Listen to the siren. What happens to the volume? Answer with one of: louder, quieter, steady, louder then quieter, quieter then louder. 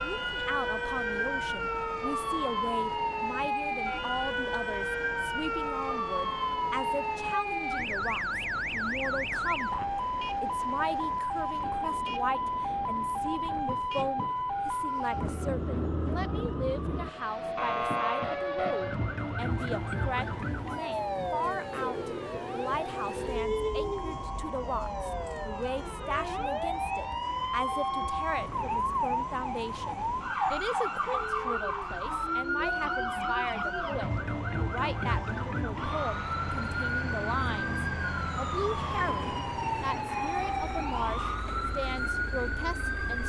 steady.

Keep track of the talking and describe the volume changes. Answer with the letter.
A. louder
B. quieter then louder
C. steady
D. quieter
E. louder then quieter
C.